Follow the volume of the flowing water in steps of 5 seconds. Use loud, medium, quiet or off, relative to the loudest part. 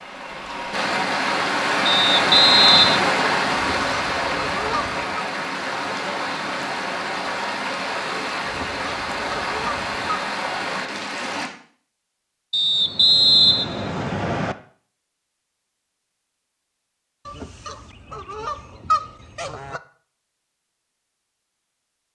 loud, medium, medium, off, off.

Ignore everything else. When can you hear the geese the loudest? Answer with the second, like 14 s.
19 s.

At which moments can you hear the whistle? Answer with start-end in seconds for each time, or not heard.
1.9-3.1, 12.5-14.6.